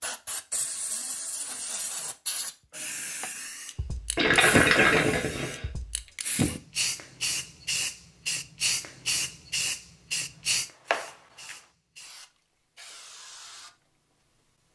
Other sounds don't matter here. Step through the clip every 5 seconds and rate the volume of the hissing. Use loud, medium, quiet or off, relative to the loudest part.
loud, loud, medium.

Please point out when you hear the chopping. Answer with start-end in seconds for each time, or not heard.
10.2-11.6.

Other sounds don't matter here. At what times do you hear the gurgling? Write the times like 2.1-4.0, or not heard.
4.2-5.7.